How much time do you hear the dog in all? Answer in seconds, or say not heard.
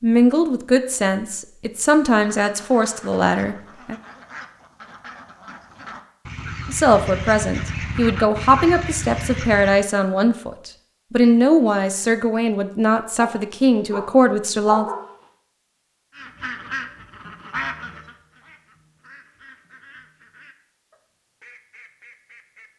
2 s.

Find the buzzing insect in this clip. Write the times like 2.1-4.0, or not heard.
not heard.